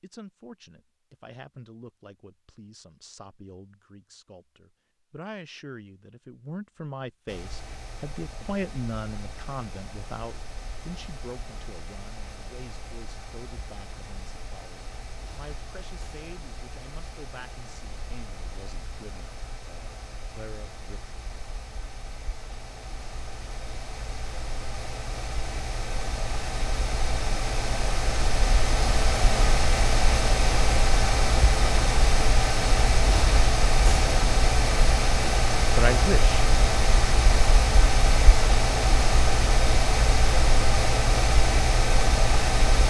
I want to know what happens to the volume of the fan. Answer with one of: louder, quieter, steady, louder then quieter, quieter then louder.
louder.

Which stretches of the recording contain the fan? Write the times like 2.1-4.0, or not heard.
7.2-42.8.